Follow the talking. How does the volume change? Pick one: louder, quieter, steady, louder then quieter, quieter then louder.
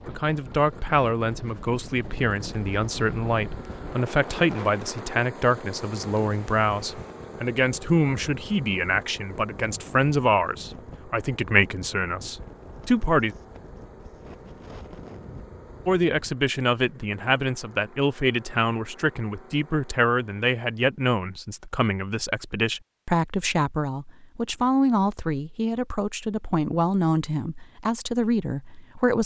steady.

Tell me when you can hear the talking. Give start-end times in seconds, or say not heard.
0.1-13.3, 15.8-29.2.